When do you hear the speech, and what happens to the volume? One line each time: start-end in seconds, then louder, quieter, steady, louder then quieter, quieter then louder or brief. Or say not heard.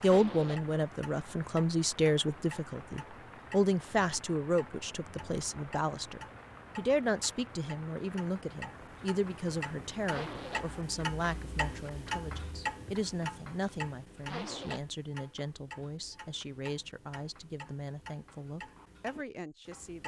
0.0-20.0 quieter.